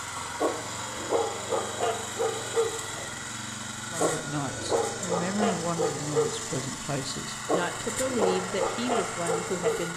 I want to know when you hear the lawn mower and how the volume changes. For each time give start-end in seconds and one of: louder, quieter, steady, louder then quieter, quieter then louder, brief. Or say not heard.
0.0-9.9 steady.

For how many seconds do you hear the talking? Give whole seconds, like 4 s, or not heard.
6 s.